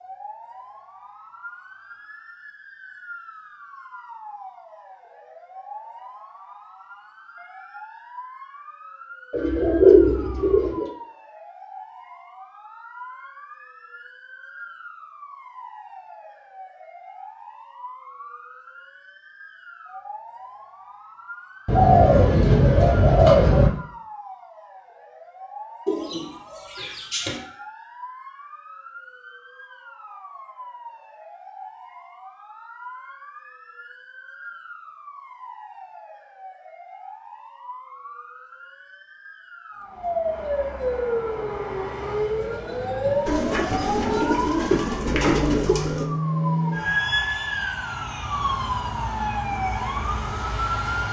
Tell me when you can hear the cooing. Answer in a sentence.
The cooing can be heard from 9.3 to 10.8 s, from 21.6 to 23.7 s, from 25.9 to 27.4 s and from 43.2 to 46.1 s.